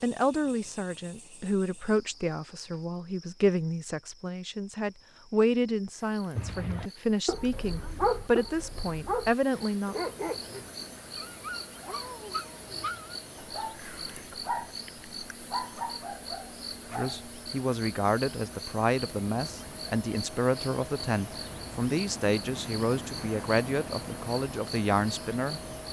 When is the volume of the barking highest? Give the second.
8 s.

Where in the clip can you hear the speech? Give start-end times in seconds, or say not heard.
0.0-9.9, 16.9-25.6.